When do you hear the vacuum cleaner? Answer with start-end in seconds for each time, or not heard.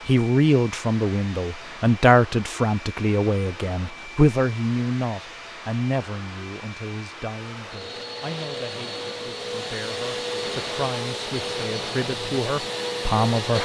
0.0-13.6.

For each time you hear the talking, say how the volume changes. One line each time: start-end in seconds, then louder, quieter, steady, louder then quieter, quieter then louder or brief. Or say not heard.
0.1-13.6 quieter then louder.